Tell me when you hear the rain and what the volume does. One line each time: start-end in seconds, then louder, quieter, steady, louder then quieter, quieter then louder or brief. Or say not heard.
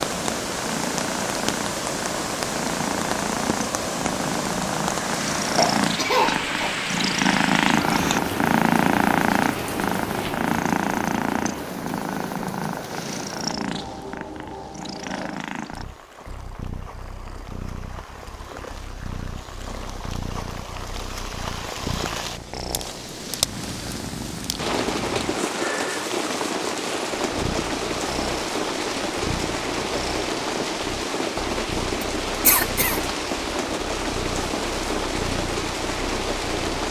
0.0-36.8 quieter then louder.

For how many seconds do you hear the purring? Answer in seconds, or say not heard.
37 s.